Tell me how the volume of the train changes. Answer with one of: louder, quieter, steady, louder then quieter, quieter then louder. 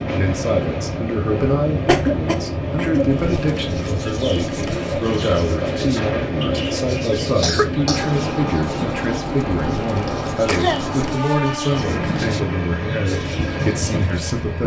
steady.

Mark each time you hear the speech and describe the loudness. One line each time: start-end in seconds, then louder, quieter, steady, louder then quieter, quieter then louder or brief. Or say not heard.
0.1-14.6 steady.